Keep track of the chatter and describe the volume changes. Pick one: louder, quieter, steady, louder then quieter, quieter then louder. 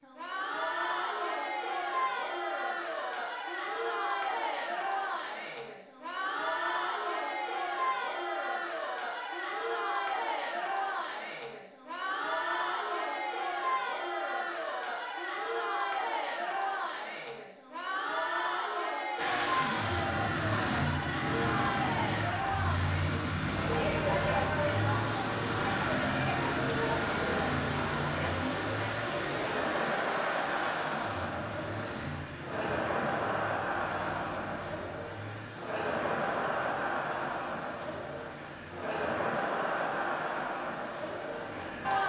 steady.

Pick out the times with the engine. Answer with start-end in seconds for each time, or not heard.
19.1-42.0.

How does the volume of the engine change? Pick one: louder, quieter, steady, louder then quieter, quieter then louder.
quieter.